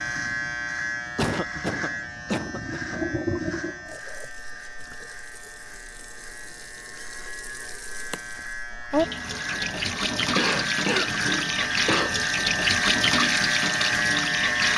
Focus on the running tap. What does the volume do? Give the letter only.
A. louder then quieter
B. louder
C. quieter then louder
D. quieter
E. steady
C.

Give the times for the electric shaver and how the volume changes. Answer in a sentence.
You can hear the electric shaver from 0.0 to 14.7 s, getting quieter then louder.